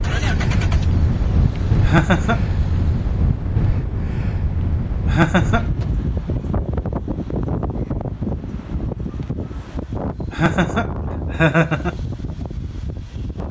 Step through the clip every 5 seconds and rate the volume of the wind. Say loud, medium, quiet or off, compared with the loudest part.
loud, loud, medium.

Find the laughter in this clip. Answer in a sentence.
You can hear the laughter from 1.8 to 2.4 s, from 5.0 to 5.7 s and from 10.3 to 11.9 s.